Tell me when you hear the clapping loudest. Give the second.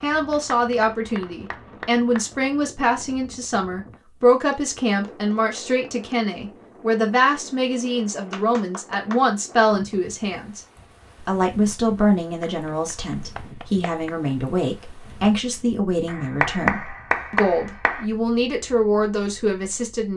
17 s.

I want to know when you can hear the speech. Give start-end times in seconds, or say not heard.
0.0-10.6, 11.2-20.1.